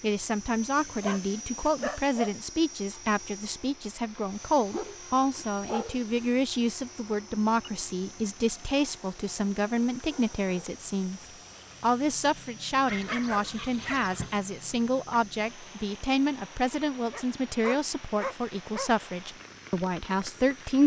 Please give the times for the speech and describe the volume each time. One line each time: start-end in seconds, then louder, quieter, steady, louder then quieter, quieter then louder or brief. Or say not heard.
0.0-11.2 steady
11.8-20.8 steady.